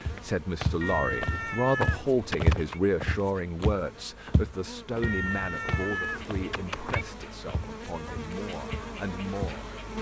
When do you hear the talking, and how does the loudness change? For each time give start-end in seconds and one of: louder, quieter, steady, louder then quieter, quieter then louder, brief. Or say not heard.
0.0-9.8 quieter.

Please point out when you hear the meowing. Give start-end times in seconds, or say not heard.
0.8-2.8, 5.0-7.0.